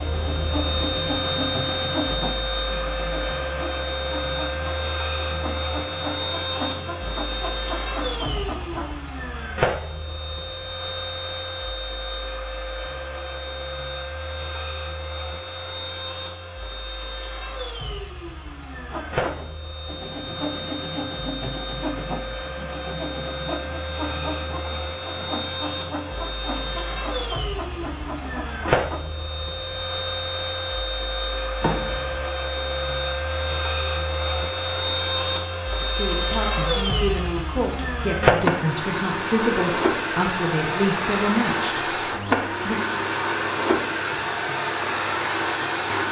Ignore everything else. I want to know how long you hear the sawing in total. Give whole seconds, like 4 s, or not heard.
19 s.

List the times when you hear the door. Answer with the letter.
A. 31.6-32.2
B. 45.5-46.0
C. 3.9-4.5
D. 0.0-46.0
A.